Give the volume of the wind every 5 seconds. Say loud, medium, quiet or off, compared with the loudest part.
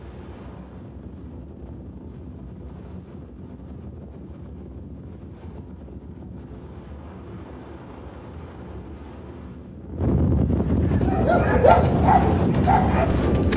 quiet, quiet, loud.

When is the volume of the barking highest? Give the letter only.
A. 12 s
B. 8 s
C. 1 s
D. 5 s
A.